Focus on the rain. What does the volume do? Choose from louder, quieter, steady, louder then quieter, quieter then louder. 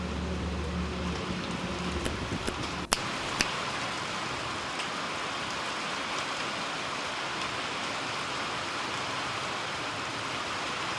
steady.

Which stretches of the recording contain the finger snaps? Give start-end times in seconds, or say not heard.
2.0-3.5.